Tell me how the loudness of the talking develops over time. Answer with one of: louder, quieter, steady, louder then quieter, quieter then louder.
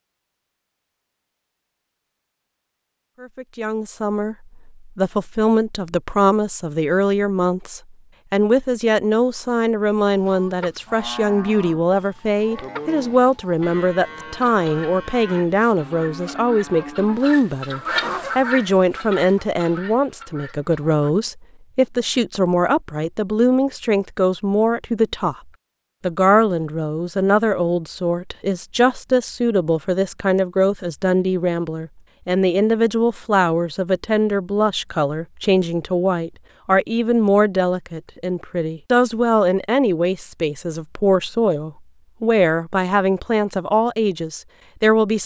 steady.